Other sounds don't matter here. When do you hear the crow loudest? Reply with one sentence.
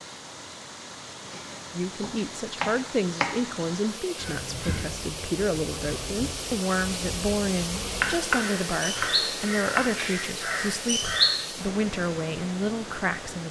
The loudest moment of the crow is at 11 seconds.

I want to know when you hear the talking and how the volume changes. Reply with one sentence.
The talking can be heard from 1.7 to 13.4 s, at a steady volume.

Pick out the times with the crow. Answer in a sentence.
The crow can be heard from 4.2 to 11.4 s.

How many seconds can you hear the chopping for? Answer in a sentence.
You can hear the chopping for 4 seconds altogether.